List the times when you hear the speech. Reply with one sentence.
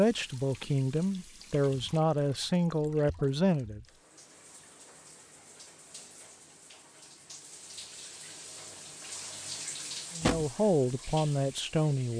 You can hear the speech from 0.0 to 3.8 s and from 10.2 to 12.1 s.